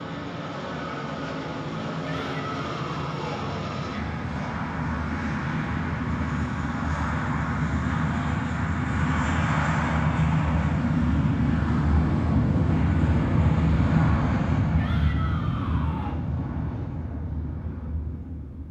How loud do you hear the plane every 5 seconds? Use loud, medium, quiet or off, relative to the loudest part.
medium, loud, loud, medium.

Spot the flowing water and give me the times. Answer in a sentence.
The flowing water can't be heard in this clip.